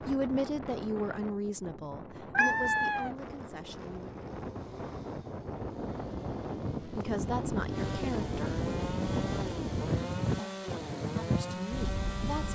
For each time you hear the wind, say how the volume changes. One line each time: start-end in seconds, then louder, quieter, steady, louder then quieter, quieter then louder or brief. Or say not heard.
0.0-12.5 louder.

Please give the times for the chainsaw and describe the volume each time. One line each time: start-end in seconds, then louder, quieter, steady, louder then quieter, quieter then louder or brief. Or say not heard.
3.1-12.5 louder.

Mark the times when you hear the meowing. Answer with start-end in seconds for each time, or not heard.
2.3-3.1.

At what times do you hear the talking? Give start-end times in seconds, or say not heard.
0.0-4.2, 6.8-8.6, 11.2-12.5.